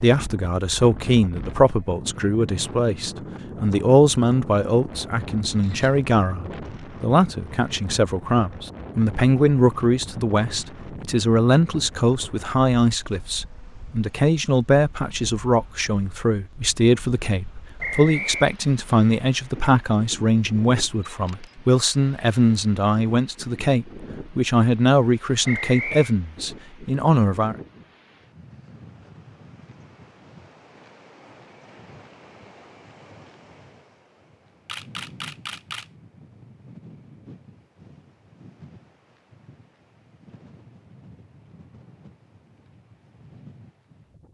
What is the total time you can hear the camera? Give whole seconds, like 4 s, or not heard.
2 s.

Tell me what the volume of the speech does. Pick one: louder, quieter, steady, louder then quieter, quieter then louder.
steady.